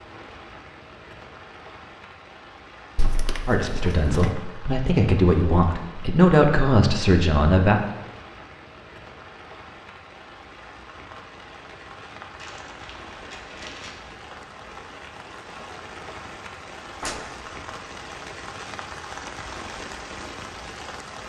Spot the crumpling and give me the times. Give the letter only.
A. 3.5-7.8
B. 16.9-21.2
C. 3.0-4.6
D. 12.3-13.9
D.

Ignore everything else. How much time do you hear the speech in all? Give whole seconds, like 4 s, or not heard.
4 s.